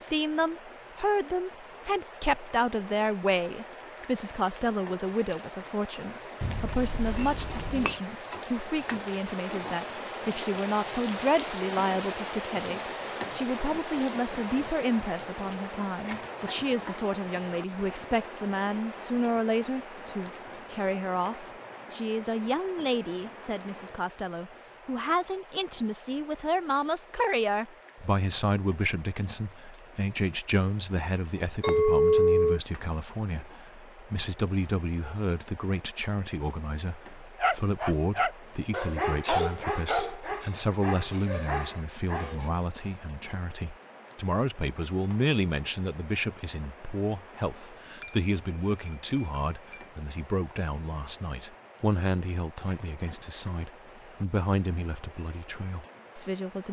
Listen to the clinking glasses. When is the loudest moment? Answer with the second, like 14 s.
32 s.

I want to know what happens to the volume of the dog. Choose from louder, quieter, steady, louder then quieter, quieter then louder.
quieter.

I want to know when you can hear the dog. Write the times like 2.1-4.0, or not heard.
37.4-42.5.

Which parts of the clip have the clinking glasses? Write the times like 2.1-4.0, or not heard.
6.4-8.0, 31.6-32.6, 48.0-49.9.